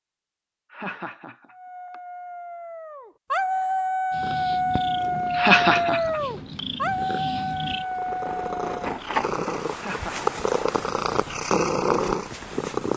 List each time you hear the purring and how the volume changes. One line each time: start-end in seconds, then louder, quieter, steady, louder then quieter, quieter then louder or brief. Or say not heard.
4.1-12.9 louder.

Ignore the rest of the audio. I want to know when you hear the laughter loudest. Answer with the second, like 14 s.
6 s.